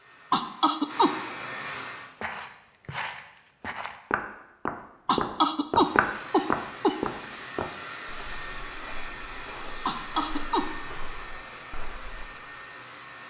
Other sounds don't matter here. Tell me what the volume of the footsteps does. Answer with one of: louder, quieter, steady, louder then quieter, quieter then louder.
louder then quieter.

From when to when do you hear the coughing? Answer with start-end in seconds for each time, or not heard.
0.3-1.1, 5.0-7.0, 9.8-10.7.